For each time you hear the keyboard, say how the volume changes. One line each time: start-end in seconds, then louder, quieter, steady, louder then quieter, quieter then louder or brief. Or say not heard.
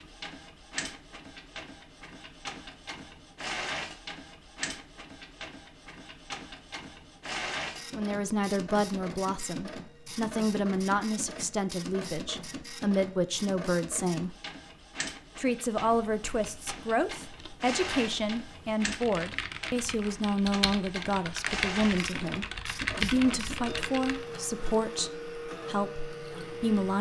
15.9-24.2 louder.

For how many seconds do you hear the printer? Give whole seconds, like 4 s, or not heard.
27 s.